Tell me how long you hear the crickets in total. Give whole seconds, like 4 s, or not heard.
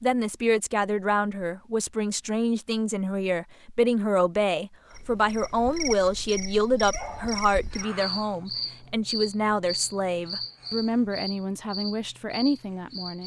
8 s.